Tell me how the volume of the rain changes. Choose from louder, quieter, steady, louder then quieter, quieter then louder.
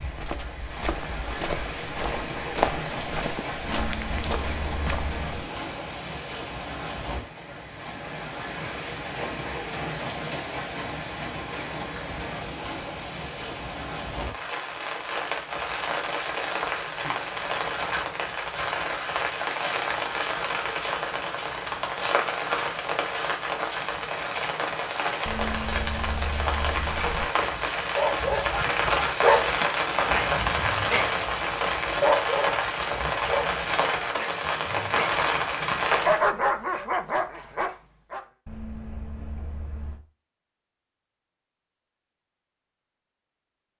louder.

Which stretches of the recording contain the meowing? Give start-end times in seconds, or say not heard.
3.6-5.4, 25.2-27.2, 38.5-40.0.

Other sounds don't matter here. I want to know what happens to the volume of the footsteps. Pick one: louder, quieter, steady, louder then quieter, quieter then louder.
louder then quieter.